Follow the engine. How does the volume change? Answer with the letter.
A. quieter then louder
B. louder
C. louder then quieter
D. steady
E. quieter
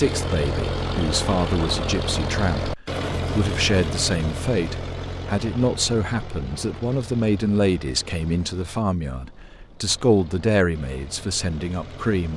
E.